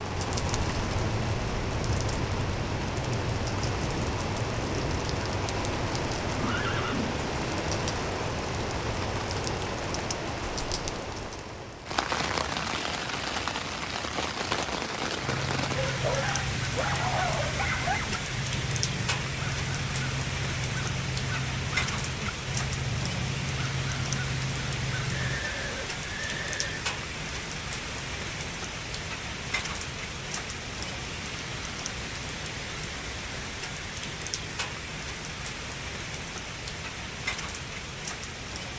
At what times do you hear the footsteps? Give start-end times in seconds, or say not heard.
not heard.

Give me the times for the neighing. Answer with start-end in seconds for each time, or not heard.
6.3-7.2, 25.1-26.9.